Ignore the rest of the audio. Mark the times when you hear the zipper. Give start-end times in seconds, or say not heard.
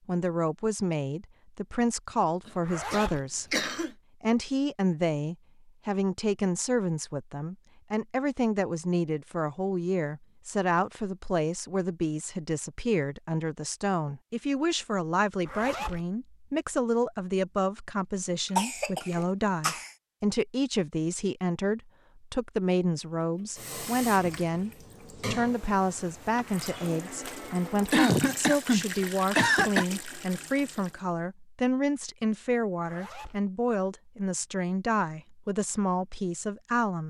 2.6-3.2, 15.4-16.1, 32.8-33.4.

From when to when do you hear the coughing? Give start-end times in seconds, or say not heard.
2.5-3.9, 18.6-19.9, 27.9-29.9.